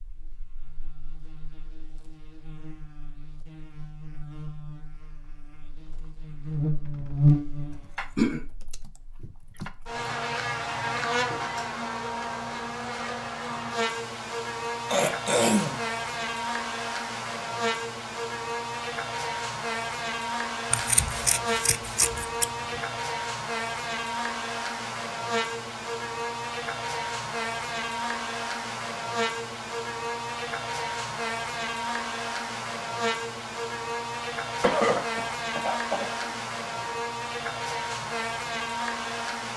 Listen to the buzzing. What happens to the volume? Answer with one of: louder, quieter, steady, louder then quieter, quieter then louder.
steady.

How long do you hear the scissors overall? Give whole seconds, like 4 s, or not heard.
2 s.